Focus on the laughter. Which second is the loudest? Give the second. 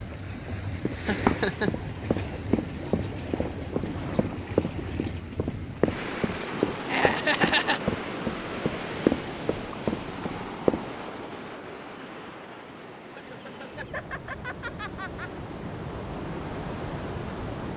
7 s.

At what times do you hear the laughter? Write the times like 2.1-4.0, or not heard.
0.9-1.7, 6.8-7.8, 13.2-15.3.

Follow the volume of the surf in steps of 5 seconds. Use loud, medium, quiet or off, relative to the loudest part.
loud, loud, medium, loud.